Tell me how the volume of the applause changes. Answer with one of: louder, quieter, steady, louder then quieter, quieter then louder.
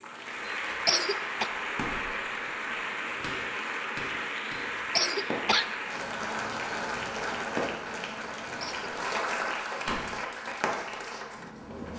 steady.